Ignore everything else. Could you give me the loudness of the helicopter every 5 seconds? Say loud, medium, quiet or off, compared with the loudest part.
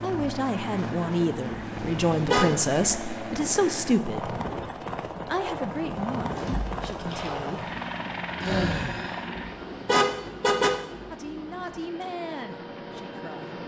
loud, loud, medium.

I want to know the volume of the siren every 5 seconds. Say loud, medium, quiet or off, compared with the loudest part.
off, loud, medium.